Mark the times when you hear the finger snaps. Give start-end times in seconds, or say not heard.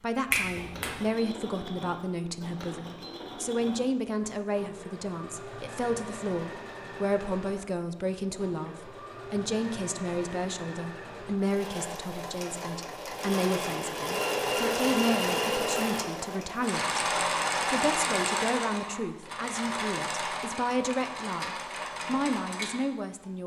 0.3-1.0.